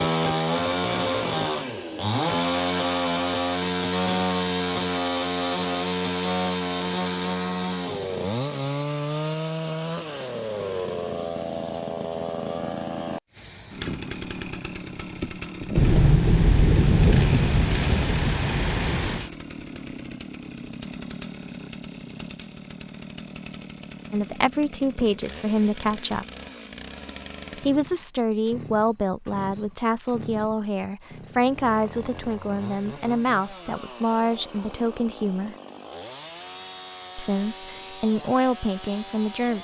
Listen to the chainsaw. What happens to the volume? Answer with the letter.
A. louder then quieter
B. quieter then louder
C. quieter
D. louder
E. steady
C.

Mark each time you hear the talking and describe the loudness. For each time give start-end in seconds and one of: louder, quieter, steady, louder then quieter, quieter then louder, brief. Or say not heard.
24.1-26.2 brief
27.6-35.5 steady
37.1-39.5 brief.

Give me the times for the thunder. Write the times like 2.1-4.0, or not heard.
15.8-19.3.